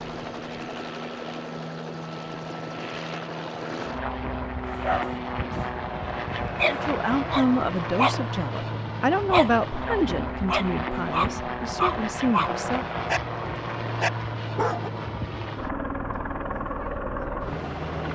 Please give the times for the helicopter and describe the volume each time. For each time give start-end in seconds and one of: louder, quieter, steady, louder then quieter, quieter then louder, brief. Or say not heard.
0.0-18.1 steady.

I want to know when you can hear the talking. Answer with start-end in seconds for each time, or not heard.
6.7-12.8.